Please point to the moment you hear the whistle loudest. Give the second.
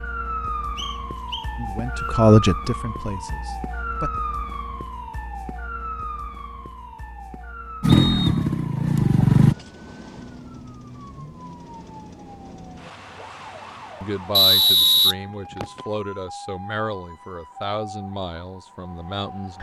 15 s.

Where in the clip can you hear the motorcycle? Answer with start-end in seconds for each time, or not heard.
7.8-9.6.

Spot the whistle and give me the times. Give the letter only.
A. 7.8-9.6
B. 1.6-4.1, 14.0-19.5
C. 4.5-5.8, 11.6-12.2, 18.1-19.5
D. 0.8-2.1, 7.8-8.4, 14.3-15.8
D.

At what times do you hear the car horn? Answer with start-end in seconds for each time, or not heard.
not heard.